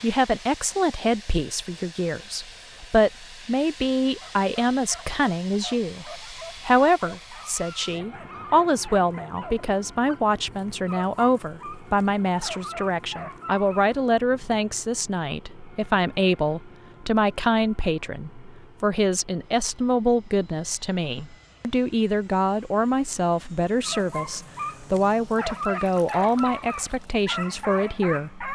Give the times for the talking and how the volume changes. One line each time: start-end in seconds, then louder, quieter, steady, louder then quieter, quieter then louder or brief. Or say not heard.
0.0-28.4 steady.